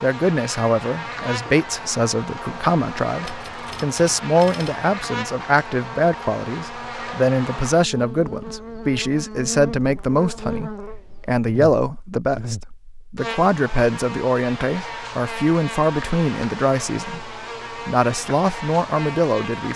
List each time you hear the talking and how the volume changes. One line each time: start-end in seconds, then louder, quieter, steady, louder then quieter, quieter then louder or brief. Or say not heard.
0.0-19.7 steady.